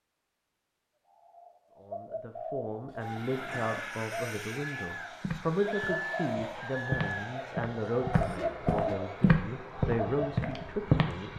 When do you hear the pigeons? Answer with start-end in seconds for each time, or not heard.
1.1-10.8.